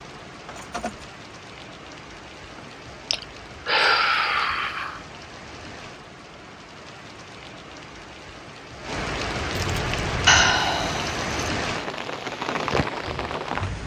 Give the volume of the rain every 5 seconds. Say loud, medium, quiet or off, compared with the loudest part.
quiet, medium, loud.